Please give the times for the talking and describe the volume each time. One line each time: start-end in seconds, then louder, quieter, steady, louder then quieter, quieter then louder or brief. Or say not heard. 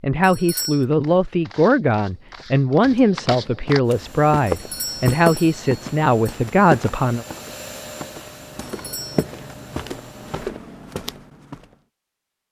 0.0-7.2 steady.